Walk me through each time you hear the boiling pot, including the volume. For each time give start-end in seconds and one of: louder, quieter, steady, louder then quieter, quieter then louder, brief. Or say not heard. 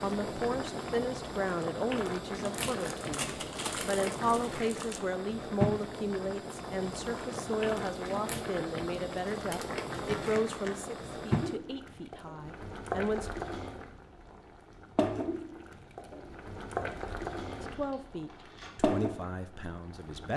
0.0-20.3 steady.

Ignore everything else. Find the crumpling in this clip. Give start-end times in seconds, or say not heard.
2.5-5.0, 9.9-10.8, 17.6-18.8.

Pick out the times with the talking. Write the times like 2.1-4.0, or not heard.
0.0-13.3, 17.6-20.3.